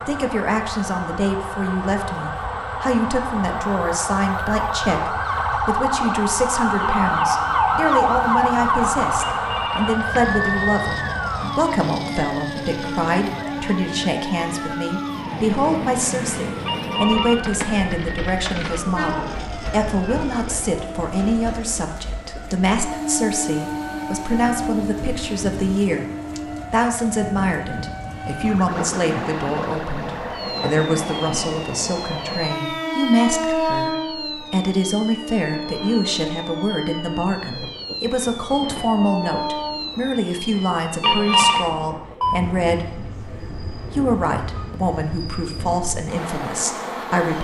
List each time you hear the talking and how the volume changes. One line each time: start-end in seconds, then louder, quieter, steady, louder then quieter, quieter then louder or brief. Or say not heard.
0.1-26.1 steady
26.7-47.4 steady.